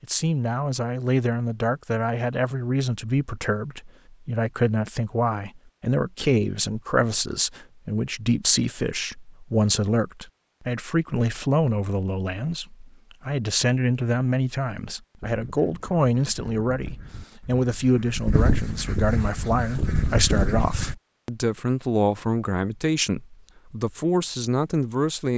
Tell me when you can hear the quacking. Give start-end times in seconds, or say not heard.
15.2-20.9.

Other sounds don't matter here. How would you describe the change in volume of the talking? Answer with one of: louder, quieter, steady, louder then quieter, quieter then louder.
steady.